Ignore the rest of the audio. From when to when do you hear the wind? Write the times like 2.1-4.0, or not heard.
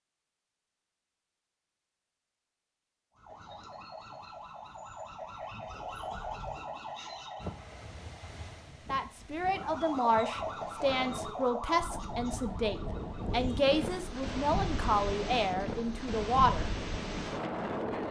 7.4-18.0.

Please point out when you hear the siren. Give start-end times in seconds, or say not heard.
3.1-7.7, 9.4-13.7.